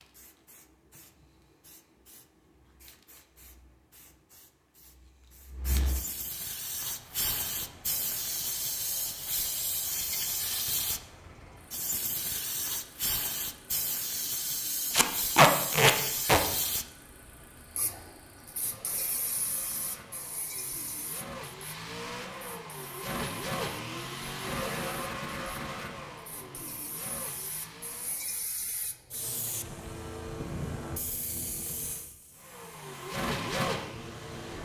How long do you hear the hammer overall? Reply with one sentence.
The hammer can't be heard in this clip.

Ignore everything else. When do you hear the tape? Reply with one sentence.
The tape can be heard from 14.9 to 16.4 s.